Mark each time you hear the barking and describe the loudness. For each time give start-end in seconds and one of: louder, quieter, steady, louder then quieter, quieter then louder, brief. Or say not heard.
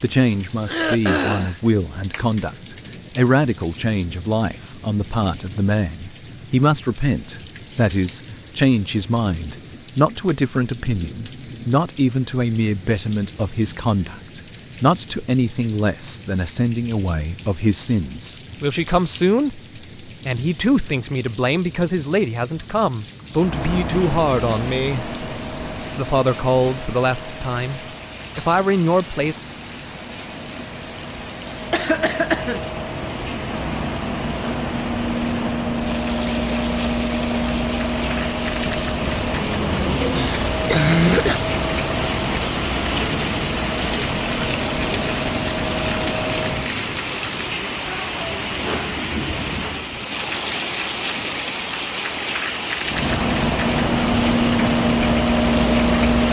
not heard.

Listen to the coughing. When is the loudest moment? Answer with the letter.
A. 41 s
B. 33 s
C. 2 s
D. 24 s
A.